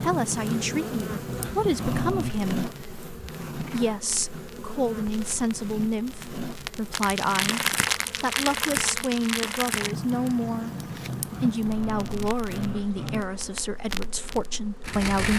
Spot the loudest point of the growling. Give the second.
2 s.